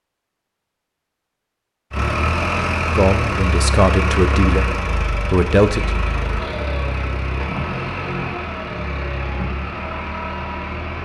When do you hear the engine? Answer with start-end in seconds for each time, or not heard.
1.9-11.0.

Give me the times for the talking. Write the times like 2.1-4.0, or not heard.
2.9-5.9.